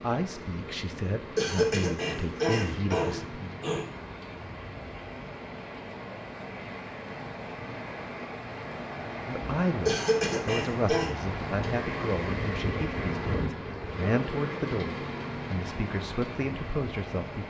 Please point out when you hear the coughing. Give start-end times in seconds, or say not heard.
1.4-3.9, 9.8-11.1.